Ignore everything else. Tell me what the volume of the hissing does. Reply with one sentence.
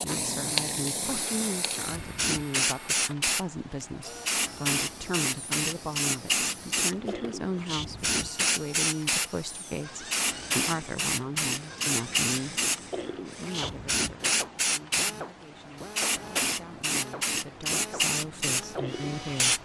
The volume of the hissing stays about the same.